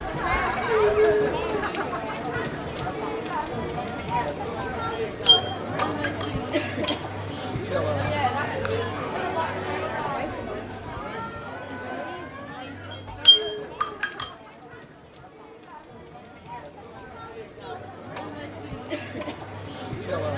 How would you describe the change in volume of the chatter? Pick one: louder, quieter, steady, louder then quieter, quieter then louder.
quieter.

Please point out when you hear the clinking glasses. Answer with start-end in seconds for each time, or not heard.
5.2-7.0, 12.9-14.3.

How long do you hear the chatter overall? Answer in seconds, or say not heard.
20 s.